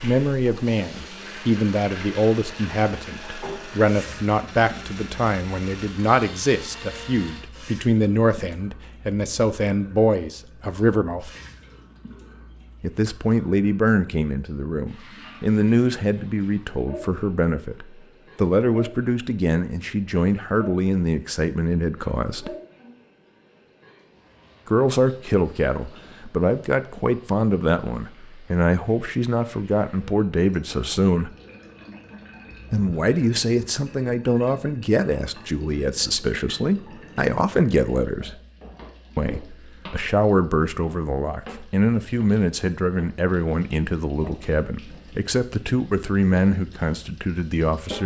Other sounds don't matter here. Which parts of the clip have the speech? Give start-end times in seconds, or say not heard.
0.0-11.3, 12.8-22.6, 24.6-31.3, 32.7-38.4, 39.1-48.0.